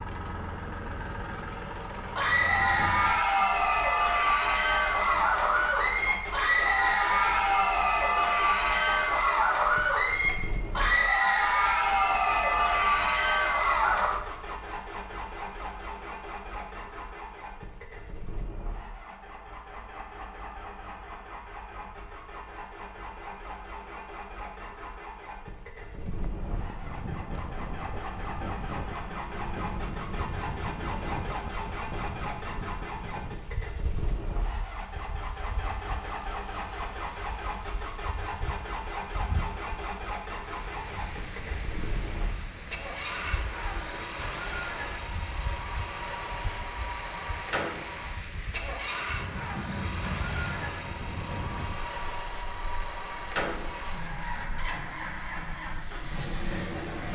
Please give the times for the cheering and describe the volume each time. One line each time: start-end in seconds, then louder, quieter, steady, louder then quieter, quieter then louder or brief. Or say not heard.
2.1-14.1 steady.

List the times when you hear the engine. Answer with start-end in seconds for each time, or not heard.
0.0-57.1.